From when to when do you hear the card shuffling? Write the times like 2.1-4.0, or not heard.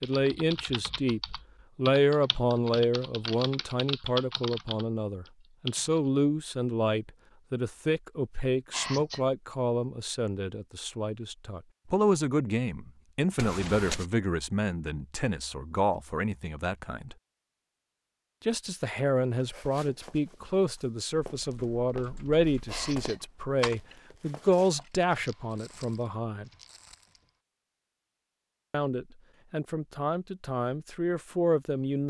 13.3-14.1.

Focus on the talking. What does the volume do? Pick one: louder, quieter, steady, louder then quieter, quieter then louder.
steady.